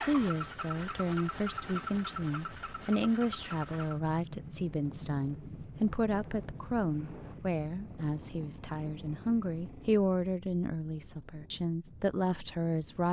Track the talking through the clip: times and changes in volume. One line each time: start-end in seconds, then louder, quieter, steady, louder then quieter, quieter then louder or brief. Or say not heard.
0.0-13.0 steady.